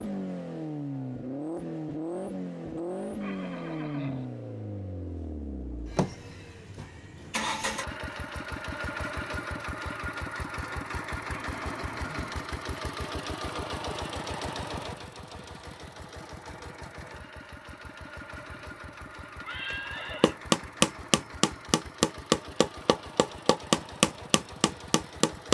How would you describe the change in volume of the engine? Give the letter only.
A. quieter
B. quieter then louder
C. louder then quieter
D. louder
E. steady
A.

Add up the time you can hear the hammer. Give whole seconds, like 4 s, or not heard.
5 s.